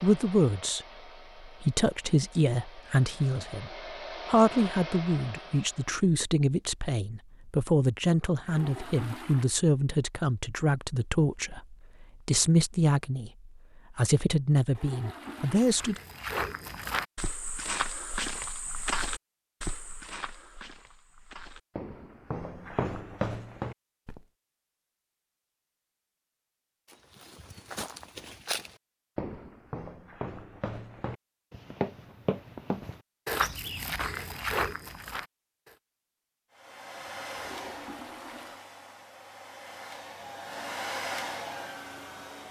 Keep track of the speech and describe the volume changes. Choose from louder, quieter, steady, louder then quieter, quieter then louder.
steady.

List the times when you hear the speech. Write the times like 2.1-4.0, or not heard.
0.0-16.0.